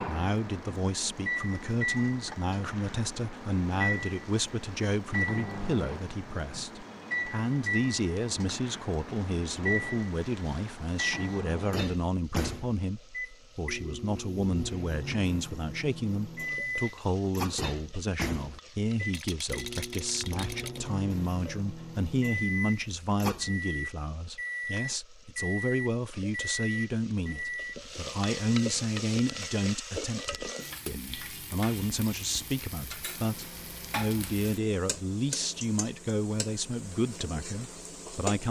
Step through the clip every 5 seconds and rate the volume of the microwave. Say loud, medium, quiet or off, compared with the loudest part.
loud, loud, loud, loud, loud, loud, quiet, quiet.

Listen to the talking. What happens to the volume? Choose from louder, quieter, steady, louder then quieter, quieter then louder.
steady.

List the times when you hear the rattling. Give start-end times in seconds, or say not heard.
19.1-20.9.